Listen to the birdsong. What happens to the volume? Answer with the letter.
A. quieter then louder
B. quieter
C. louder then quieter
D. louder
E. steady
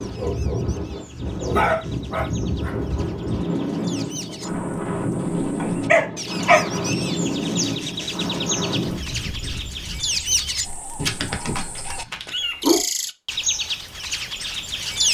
D.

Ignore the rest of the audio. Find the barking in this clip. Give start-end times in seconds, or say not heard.
0.1-2.8, 5.6-7.1, 10.9-12.8.